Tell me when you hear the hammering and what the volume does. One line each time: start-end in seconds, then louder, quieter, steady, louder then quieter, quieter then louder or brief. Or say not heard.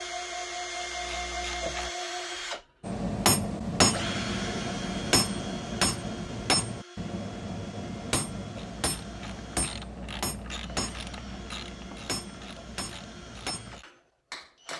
2.8-14.7 quieter.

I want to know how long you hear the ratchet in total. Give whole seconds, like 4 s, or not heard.
7 s.